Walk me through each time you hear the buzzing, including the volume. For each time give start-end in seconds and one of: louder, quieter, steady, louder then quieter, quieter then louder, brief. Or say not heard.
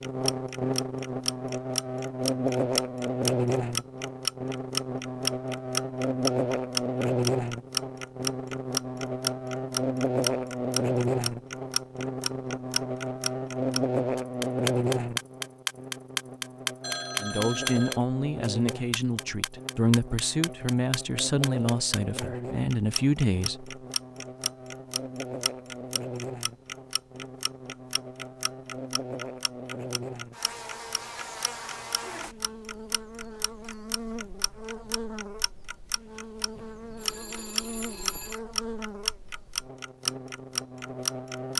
0.0-41.5 quieter.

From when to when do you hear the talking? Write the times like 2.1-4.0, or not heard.
17.2-23.8.